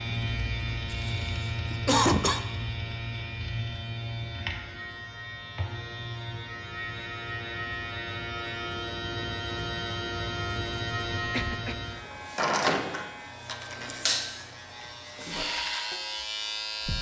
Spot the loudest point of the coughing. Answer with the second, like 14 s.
2 s.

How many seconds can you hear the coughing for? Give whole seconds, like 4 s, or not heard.
2 s.